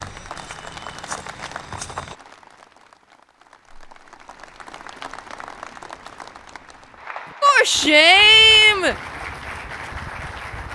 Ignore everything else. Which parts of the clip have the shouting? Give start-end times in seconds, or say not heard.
7.4-8.9.